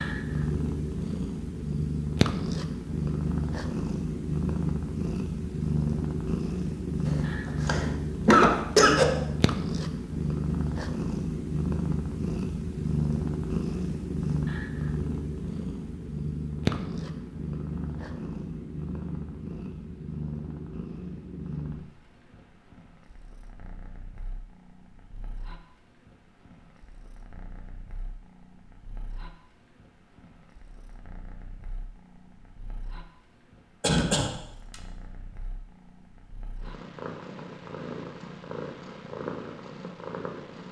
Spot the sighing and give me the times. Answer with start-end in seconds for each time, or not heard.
not heard.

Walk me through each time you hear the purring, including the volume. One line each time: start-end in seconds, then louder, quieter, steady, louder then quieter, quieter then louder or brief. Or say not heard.
0.0-40.6 quieter then louder.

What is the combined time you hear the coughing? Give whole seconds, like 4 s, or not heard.
3 s.